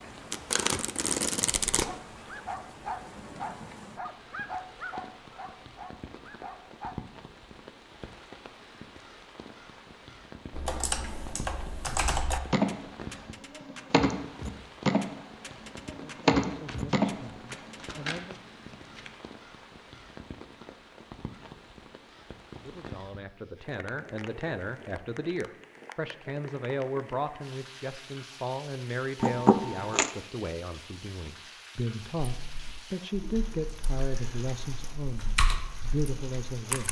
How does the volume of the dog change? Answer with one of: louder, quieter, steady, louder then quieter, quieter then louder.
quieter.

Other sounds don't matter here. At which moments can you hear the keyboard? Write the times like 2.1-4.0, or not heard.
10.5-18.2, 32.3-36.8.